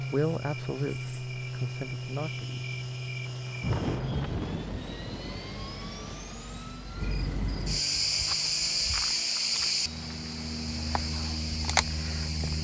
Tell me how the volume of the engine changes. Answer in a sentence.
The volume of the engine goes down.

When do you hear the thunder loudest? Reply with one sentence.
The loudest moment of the thunder is at 4 seconds.